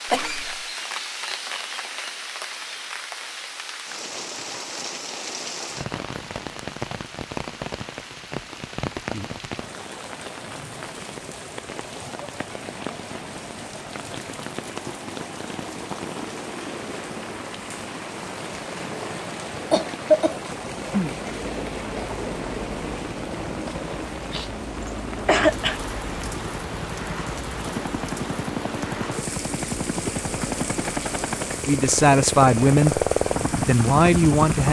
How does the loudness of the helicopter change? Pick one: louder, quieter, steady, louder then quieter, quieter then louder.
louder.